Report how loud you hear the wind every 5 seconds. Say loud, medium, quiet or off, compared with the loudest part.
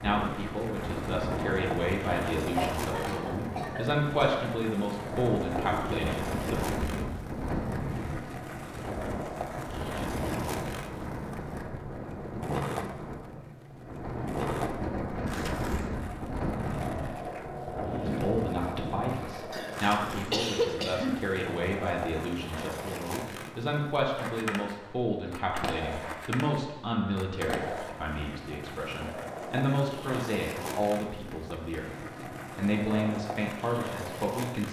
loud, loud, loud, loud, off, off, off.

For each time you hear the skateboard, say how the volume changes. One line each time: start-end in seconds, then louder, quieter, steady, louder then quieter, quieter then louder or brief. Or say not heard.
0.0-34.6 steady.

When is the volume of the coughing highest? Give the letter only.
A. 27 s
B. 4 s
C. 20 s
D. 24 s
C.